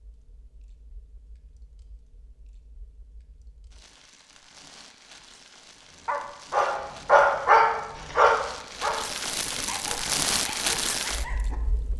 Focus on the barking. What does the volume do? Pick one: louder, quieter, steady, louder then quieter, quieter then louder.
quieter.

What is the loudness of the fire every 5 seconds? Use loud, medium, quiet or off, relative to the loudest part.
quiet, medium, loud.